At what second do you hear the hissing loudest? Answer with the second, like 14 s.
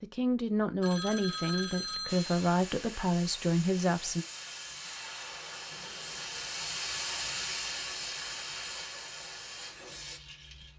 7 s.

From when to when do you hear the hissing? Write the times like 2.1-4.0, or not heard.
2.0-10.7.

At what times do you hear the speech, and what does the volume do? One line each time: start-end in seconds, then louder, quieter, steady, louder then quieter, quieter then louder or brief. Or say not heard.
0.0-4.2 steady.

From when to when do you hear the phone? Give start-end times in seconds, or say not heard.
0.8-2.4.